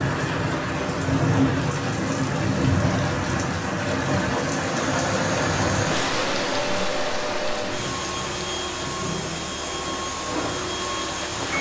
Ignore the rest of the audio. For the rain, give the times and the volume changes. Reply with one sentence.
You can hear the rain from 0.0 to 11.5 s, getting quieter.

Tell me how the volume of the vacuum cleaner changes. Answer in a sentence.
The loudness of the vacuum cleaner stays about the same.